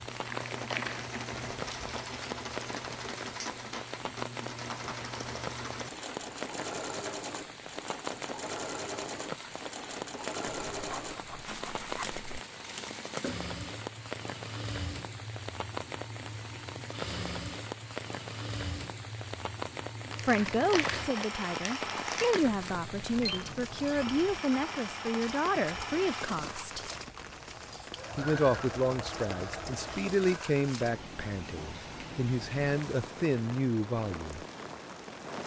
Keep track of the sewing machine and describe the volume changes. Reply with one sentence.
The loudness of the sewing machine stays about the same.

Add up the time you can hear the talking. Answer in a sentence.
The talking can be heard for 13 seconds in total.